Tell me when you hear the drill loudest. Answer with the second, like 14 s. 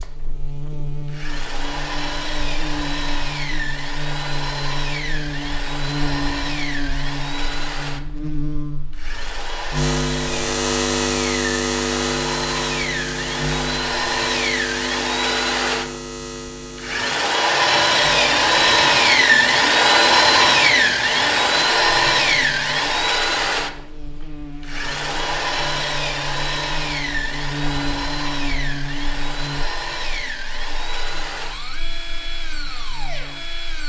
20 s.